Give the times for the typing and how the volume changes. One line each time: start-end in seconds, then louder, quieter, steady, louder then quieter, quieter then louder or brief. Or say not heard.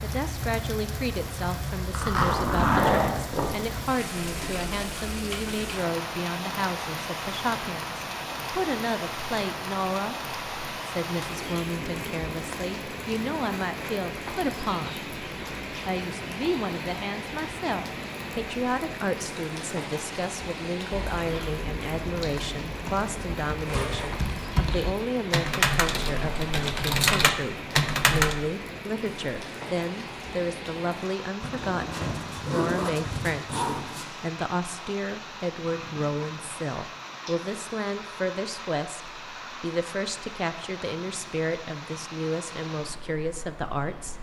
20.9-28.4 louder.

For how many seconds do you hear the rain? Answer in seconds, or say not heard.
44 s.